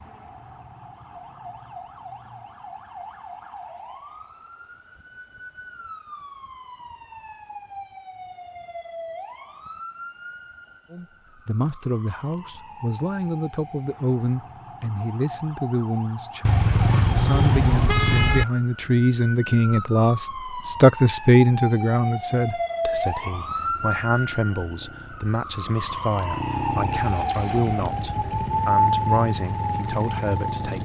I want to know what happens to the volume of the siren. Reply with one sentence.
The loudness of the siren goes up.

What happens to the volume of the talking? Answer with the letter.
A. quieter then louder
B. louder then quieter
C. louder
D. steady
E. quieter
B.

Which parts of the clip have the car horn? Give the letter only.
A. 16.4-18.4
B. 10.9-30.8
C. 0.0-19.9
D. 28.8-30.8
A.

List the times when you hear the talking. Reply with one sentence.
You can hear the talking from 10.9 to 30.8 s.